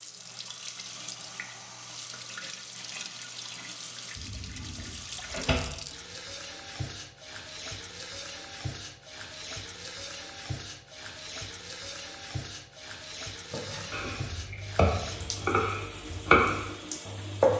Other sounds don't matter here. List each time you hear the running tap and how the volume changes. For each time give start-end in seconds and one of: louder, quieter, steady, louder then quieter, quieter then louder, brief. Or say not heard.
0.0-17.5 steady.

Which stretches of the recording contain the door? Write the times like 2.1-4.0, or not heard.
4.2-5.6.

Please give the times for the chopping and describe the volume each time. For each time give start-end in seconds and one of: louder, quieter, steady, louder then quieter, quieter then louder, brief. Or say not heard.
13.5-17.5 louder then quieter.